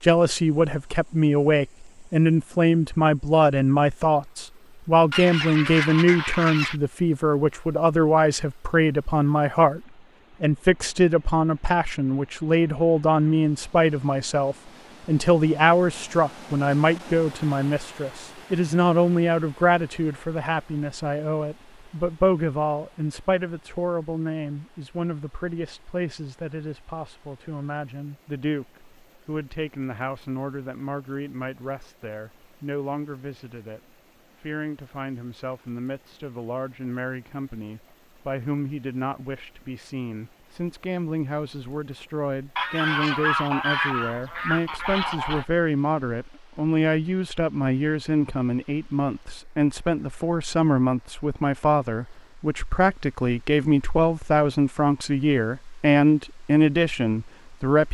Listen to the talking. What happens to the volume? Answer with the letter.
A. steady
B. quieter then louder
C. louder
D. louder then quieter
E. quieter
B.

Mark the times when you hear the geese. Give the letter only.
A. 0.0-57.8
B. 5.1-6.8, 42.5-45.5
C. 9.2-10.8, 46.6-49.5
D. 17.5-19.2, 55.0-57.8
B.